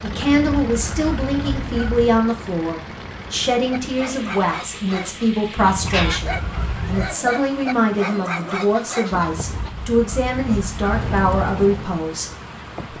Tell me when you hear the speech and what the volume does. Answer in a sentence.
You can hear the speech from 0.0 to 12.3 s, at a steady volume.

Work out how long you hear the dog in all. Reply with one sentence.
You can hear the dog for 6 seconds altogether.